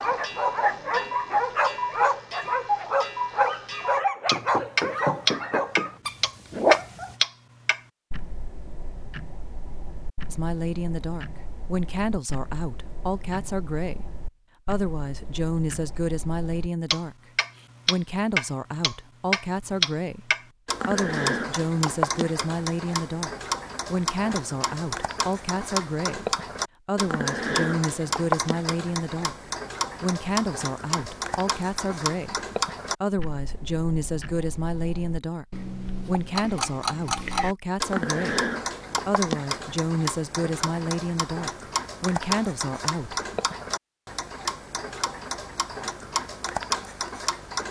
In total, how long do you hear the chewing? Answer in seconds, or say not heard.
not heard.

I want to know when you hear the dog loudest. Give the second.
7 s.